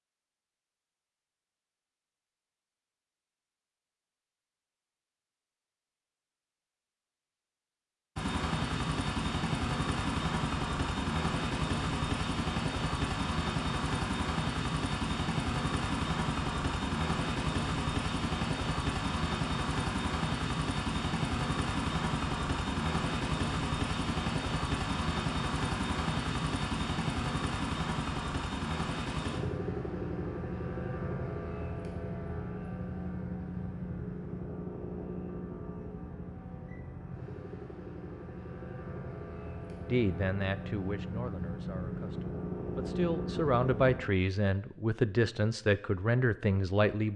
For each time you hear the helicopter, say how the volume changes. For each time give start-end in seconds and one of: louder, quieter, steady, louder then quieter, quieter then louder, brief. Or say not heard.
8.2-44.0 quieter.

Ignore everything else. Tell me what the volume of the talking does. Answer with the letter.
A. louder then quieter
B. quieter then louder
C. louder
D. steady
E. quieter
B.